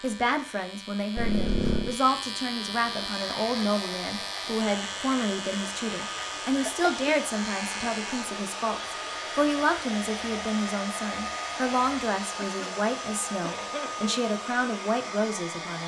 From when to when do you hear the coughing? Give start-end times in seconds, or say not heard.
1.1-1.9, 6.7-7.1, 12.3-12.8, 13.4-14.2.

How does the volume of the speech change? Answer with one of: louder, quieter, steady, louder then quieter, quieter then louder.
steady.